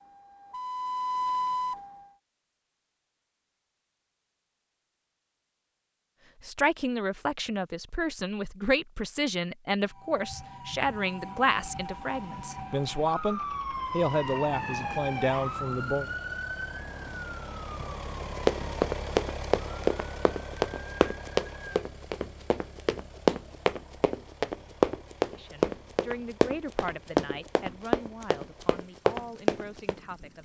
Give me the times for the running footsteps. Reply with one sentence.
You can hear the running footsteps from 18.2 to 29.9 s.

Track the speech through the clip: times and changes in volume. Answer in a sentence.
You can hear the speech from 6.4 to 16.1 s, at a steady volume; and from 25.3 to 30.4 s, getting quieter.